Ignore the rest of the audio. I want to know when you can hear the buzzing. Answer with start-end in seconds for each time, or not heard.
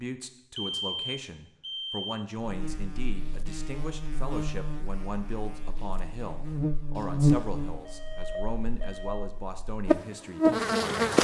2.4-11.1.